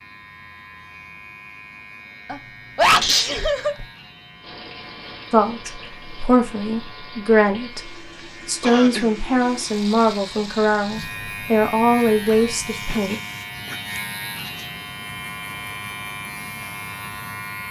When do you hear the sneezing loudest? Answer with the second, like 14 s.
3 s.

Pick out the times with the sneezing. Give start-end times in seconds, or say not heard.
2.2-3.9, 8.6-9.1, 12.8-14.7.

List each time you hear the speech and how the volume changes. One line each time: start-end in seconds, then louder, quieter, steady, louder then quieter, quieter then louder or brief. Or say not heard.
5.3-13.2 steady.